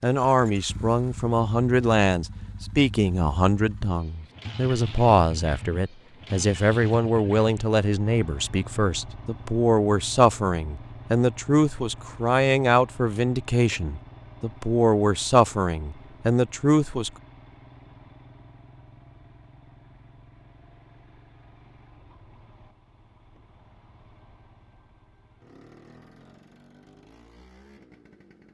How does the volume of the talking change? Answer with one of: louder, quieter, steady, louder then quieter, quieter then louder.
steady.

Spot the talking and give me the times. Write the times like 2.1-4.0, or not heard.
0.0-17.1.